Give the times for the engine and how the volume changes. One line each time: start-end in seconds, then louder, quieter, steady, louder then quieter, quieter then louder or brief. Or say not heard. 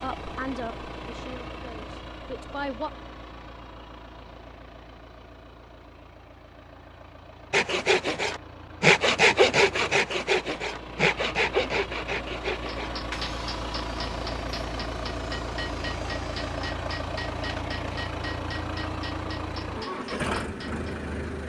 0.0-21.4 quieter then louder.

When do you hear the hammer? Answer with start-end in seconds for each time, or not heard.
12.7-21.0.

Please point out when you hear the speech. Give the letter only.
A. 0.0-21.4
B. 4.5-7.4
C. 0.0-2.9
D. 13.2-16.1
C.